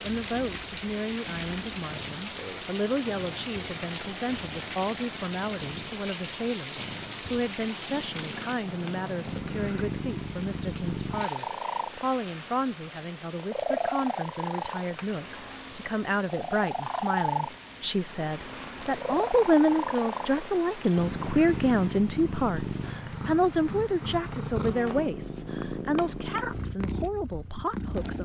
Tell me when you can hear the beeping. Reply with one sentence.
The beeping can't be heard in this clip.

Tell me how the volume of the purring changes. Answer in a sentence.
The volume of the purring goes up.